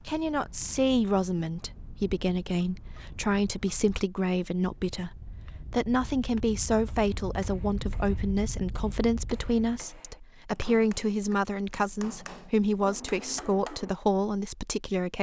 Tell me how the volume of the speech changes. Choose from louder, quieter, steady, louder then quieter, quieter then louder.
steady.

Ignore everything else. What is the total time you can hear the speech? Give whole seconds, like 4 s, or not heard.
15 s.